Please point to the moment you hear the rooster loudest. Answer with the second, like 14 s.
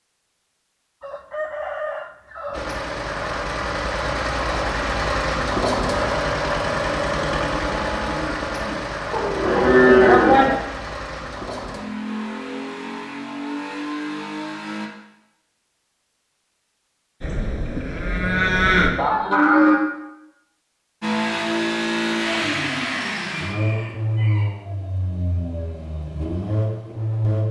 2 s.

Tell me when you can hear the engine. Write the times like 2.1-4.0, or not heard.
2.5-14.9, 21.0-27.4.